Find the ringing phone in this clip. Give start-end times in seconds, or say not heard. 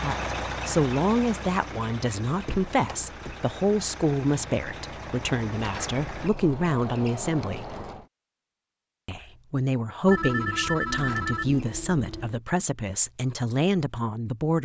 10.1-12.4.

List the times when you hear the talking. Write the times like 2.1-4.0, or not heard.
0.0-7.8, 9.1-14.6.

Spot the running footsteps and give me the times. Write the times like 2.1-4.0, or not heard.
not heard.